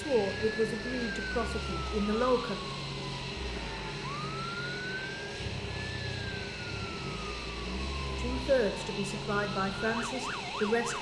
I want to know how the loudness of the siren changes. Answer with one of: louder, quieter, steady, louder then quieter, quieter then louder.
steady.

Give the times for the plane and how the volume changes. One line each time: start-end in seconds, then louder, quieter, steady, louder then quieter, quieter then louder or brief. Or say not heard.
0.0-10.9 steady.